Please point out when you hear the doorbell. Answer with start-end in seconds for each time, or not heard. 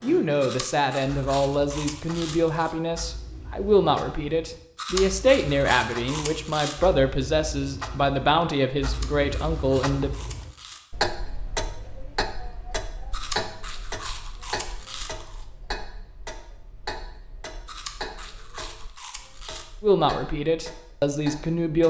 not heard.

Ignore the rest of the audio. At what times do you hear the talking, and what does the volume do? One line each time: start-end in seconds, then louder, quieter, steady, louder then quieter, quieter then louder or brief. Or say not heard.
0.0-10.1 steady
19.8-21.8 brief.